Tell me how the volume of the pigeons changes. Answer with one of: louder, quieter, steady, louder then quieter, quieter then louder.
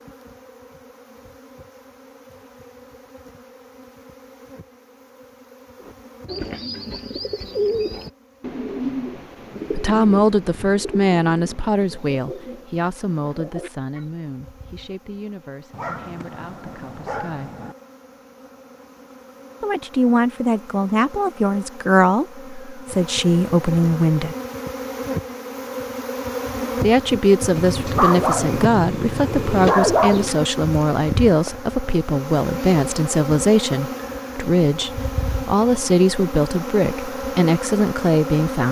quieter.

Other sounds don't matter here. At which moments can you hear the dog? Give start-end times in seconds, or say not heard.
15.7-17.8, 27.6-30.4.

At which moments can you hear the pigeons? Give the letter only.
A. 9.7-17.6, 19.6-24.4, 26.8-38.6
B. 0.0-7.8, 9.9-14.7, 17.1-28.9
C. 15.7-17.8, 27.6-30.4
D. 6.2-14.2
D.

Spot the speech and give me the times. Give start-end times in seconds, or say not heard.
9.7-17.6, 19.6-24.4, 26.8-38.6.